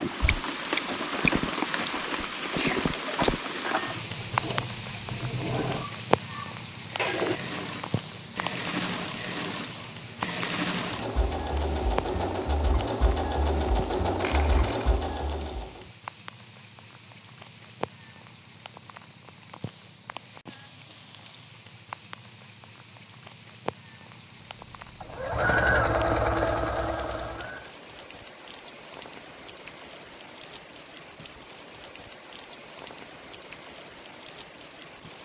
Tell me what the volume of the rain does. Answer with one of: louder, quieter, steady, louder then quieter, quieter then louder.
quieter.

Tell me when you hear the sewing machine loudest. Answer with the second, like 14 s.
26 s.